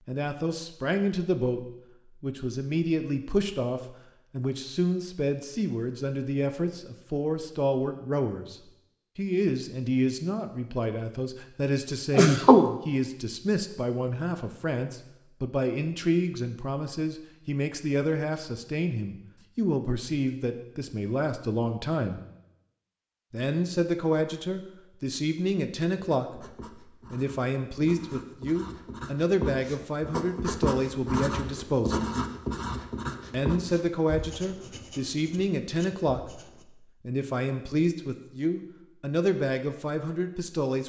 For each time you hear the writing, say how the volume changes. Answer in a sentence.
The writing can be heard from 25.9 to 36.6 s, getting louder then quieter.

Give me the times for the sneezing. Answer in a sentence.
You can hear the sneezing from 12.2 to 12.8 s.